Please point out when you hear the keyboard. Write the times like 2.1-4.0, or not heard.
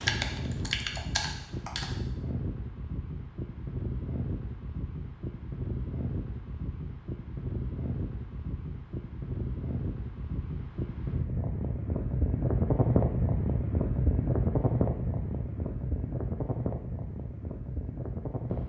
0.0-1.9.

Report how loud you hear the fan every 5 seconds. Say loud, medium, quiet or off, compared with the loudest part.
medium, medium, loud, medium.